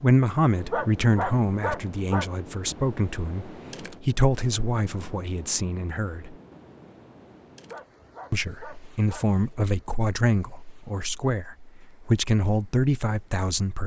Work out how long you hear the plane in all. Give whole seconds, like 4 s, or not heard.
not heard.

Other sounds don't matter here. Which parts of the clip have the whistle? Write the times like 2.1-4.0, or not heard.
not heard.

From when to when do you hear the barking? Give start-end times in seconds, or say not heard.
0.7-2.3, 7.7-9.3.